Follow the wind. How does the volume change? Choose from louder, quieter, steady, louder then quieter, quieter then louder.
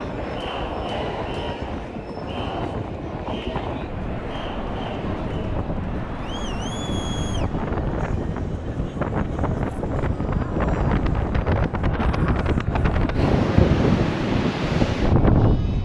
louder.